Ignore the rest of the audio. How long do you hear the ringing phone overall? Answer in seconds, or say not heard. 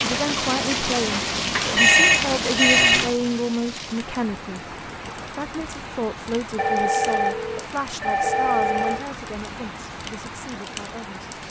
4 s.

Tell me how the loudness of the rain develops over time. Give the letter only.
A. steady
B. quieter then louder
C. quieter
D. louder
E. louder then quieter
C.